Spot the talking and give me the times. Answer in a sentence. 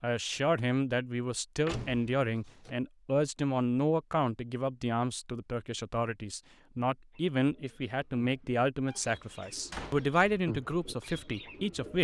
You can hear the talking from 0.0 to 11.9 s.